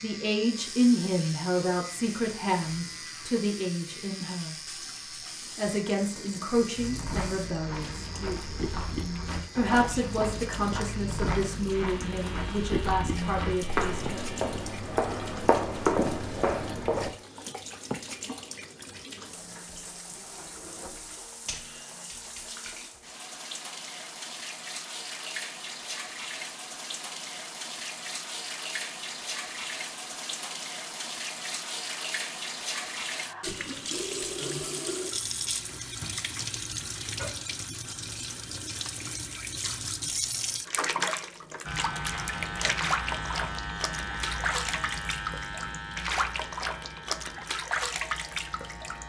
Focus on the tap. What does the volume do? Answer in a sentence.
The loudness of the tap goes up.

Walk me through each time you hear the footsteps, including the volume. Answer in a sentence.
The footsteps can be heard from 6.8 to 17.1 s, getting louder.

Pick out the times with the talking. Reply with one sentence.
The talking can be heard from 0.0 to 4.5 s, from 5.5 to 8.4 s and from 9.6 to 14.2 s.